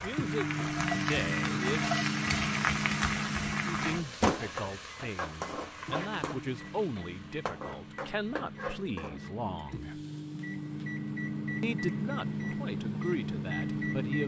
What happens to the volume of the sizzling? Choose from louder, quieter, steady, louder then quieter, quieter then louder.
quieter.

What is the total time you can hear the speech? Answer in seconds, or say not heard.
11 s.